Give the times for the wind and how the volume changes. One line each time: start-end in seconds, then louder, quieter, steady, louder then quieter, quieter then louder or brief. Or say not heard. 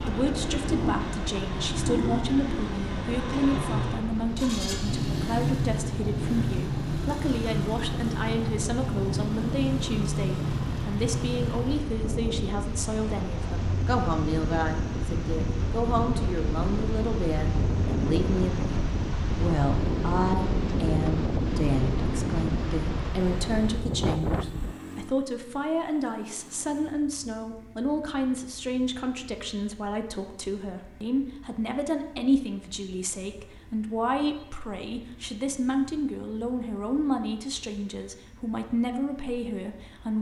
0.0-24.8 louder.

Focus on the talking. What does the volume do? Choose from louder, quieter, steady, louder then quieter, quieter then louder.
steady.